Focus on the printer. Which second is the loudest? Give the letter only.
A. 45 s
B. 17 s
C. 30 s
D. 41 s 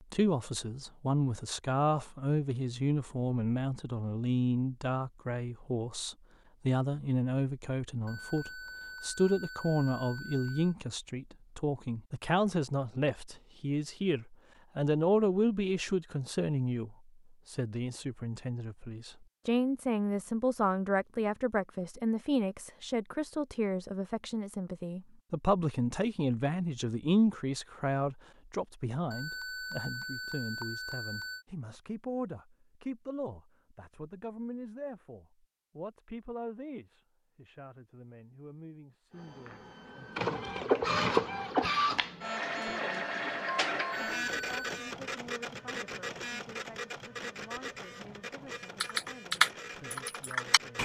D.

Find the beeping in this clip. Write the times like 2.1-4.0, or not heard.
8.1-10.8, 29.1-31.4, 43.9-44.7.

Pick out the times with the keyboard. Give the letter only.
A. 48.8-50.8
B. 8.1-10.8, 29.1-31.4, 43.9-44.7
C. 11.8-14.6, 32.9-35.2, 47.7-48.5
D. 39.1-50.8
A.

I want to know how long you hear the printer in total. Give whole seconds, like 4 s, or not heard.
12 s.